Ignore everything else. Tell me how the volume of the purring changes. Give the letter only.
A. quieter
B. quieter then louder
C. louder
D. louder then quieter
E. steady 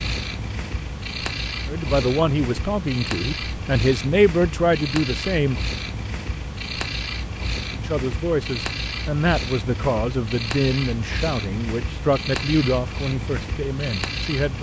E.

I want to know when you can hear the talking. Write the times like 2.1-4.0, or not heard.
1.6-5.7, 7.7-14.5.